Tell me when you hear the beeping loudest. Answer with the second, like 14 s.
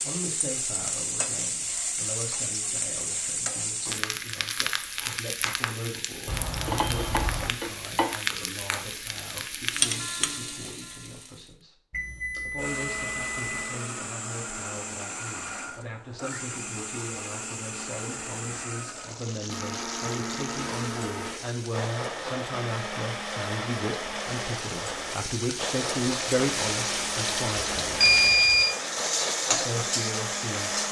28 s.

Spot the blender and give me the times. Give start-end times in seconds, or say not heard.
12.6-30.8.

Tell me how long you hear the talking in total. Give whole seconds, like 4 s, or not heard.
29 s.